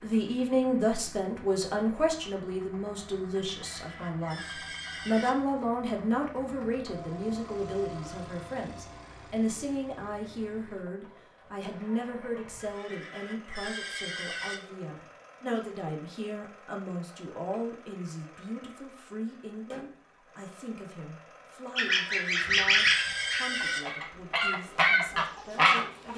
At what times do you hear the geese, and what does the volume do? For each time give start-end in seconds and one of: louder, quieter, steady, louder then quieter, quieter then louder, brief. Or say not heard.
21.8-26.1 quieter then louder.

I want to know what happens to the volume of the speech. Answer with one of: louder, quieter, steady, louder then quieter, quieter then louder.
quieter.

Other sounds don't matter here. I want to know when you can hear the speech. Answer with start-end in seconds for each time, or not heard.
0.0-26.1.